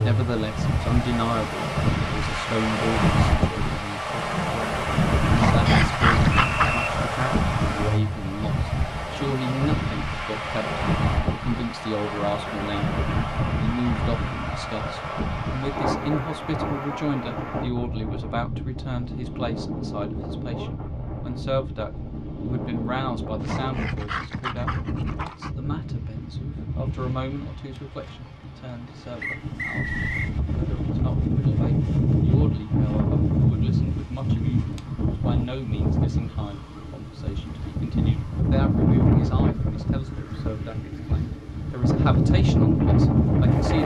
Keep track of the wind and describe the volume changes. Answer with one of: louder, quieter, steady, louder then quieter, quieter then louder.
quieter then louder.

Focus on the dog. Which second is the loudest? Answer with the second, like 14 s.
6 s.